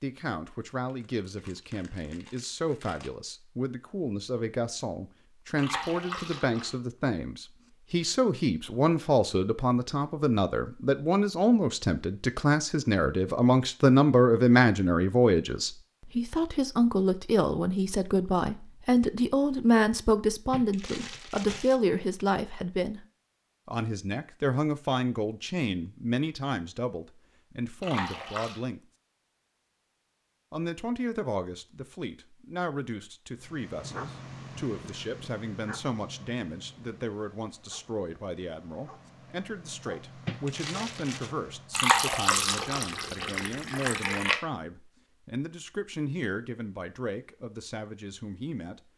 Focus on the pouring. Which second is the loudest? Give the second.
42 s.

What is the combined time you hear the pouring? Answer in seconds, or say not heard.
5 s.